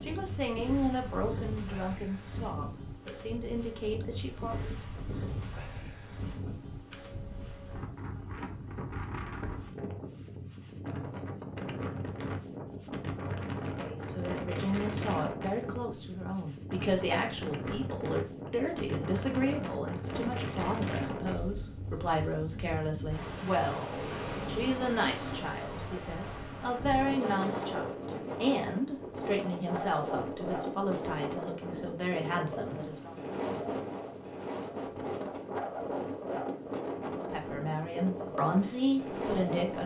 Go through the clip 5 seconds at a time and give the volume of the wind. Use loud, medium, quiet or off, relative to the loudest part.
medium, medium, loud, loud, loud, loud, loud, loud.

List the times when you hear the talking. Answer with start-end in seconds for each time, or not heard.
0.0-4.8, 13.8-33.1, 37.1-39.8.